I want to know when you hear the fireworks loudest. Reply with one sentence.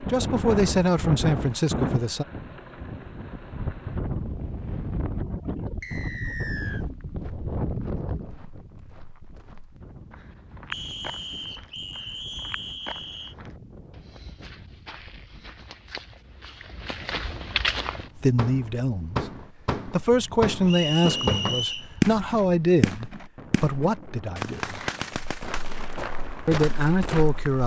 The volume of the fireworks peaks at 22 seconds.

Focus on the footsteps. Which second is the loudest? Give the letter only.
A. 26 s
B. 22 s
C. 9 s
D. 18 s
D.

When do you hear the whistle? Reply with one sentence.
You can hear the whistle from 5.8 to 6.8 s, from 10.7 to 13.3 s and from 20.6 to 21.9 s.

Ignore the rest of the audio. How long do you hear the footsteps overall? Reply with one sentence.
You can hear the footsteps for 14 seconds altogether.